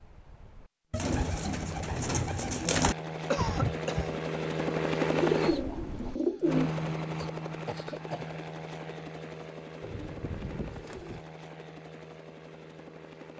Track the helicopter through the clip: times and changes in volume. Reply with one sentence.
You can hear the helicopter from 0.0 to 13.3 s, getting louder then quieter.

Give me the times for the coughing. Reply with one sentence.
The coughing can be heard from 3.3 to 4.2 s and from 7.2 to 8.4 s.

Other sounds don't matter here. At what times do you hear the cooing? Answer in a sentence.
You can hear the cooing from 0.9 to 3.0 s, from 5.1 to 6.7 s and from 9.8 to 11.2 s.